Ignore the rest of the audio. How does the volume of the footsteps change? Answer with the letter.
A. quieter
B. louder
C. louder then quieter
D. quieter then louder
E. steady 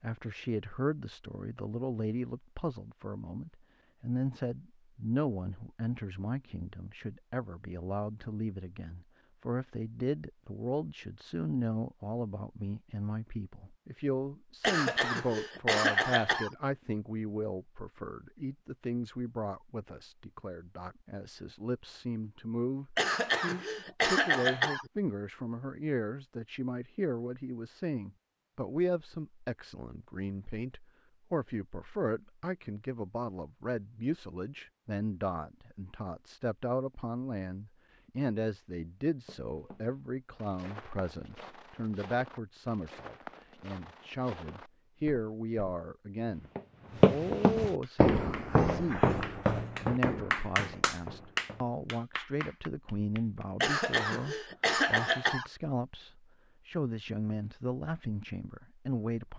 C.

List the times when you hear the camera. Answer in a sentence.
The camera can't be heard in this clip.